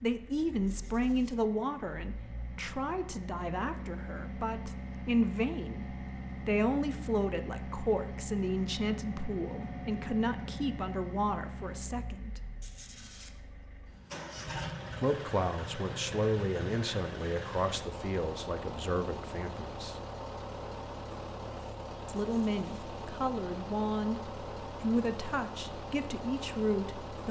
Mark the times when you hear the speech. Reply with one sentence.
You can hear the speech from 0.0 to 12.4 s, from 15.0 to 20.0 s and from 22.1 to 27.2 s.